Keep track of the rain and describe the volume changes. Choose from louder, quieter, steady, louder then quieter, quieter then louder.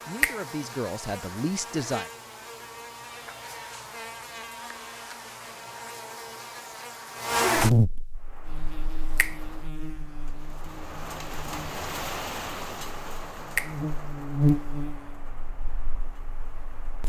louder then quieter.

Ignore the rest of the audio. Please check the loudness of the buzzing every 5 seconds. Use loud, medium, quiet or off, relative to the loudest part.
medium, loud, loud, quiet.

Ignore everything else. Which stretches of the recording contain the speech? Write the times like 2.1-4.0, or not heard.
0.1-2.0.